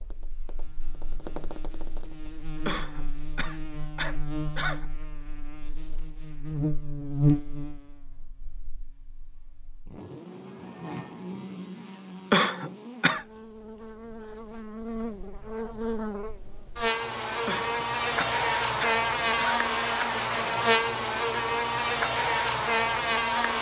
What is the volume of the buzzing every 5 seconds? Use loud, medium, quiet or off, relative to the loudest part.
quiet, medium, quiet, loud, loud.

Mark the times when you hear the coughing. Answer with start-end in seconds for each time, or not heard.
2.6-4.8, 12.3-13.2, 17.4-19.6.